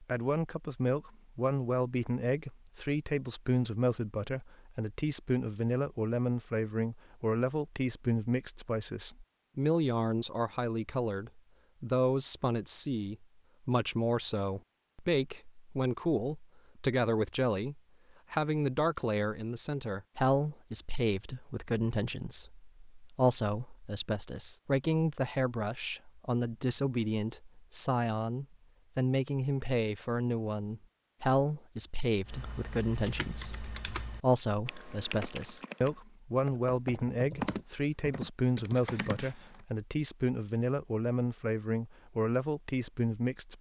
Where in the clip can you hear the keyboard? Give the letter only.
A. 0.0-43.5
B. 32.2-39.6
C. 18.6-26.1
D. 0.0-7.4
B.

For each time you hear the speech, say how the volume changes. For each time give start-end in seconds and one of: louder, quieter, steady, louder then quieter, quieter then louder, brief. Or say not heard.
0.0-43.5 steady.